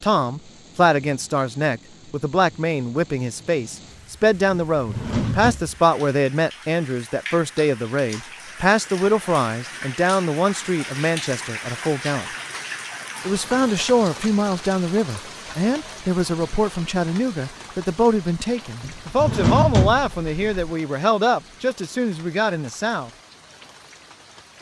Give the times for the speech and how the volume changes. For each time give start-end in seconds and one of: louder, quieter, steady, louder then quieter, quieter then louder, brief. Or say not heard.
0.0-12.2 steady
13.2-23.1 steady.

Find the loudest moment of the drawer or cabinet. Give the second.
20 s.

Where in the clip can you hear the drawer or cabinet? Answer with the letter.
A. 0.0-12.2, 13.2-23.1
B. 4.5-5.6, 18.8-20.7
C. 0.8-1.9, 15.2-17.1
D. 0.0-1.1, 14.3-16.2
B.